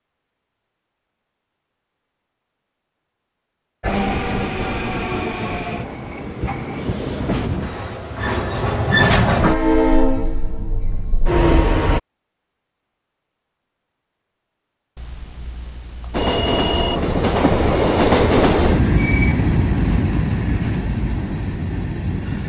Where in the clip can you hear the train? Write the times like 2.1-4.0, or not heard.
3.8-12.0, 16.1-22.4.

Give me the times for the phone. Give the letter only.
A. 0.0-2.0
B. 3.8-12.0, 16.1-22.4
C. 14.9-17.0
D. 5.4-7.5
C.